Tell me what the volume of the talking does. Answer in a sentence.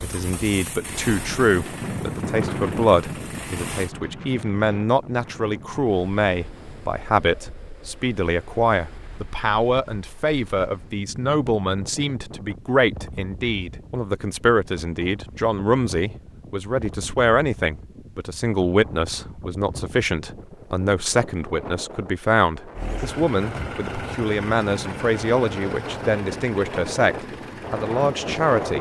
The loudness of the talking stays about the same.